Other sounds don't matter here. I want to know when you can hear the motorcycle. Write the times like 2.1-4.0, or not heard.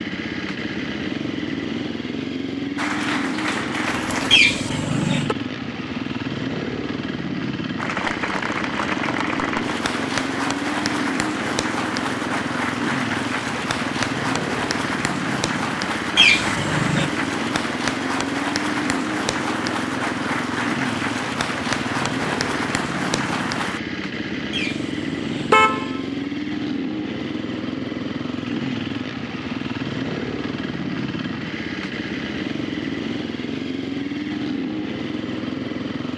0.0-36.1.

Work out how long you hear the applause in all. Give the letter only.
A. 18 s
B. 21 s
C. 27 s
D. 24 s
A.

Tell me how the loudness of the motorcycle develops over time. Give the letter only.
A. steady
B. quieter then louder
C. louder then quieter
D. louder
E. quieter
A.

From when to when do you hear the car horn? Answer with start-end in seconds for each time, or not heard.
4.3-5.3, 16.1-17.1, 24.5-26.0.